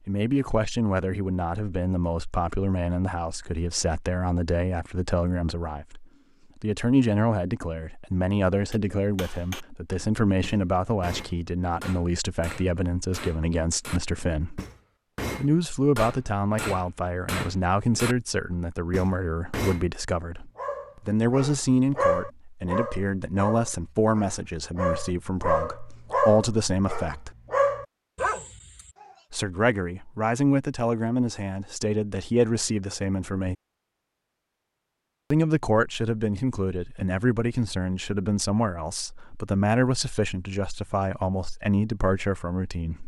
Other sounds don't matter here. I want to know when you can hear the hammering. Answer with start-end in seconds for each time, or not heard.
8.7-9.7, 10.4-18.1, 18.9-19.9.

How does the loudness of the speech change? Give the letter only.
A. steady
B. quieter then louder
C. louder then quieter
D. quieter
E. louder
A.